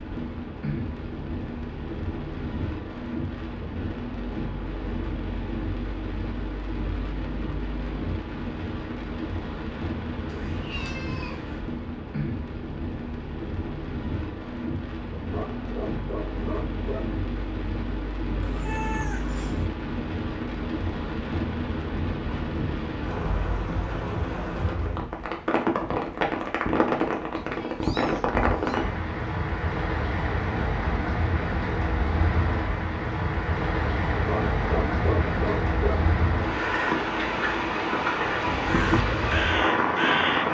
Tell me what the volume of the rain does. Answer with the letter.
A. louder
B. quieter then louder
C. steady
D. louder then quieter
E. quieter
A.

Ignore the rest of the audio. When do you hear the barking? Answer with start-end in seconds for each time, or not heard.
15.2-17.1, 34.1-36.0.